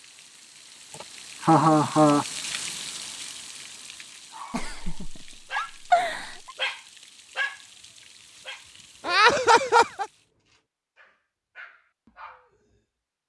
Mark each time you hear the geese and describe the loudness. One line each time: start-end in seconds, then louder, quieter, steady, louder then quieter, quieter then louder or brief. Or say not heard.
not heard.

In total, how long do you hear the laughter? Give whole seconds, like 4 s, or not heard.
4 s.